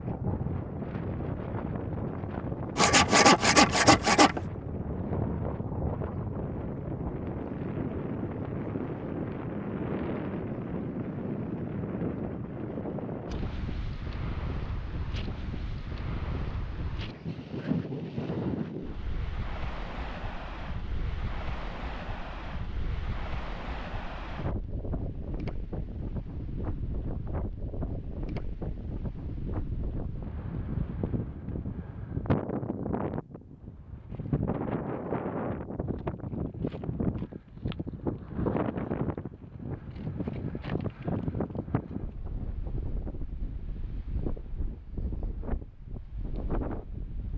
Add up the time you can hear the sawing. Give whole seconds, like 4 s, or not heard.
2 s.